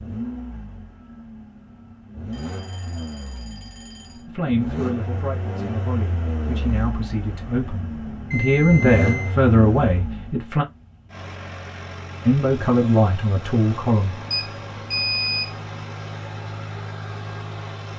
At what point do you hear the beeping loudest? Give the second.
15 s.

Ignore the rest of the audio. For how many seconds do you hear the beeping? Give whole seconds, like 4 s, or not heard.
4 s.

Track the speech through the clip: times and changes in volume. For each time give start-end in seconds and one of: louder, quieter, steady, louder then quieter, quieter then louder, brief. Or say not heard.
4.2-10.7 louder
12.2-14.2 brief.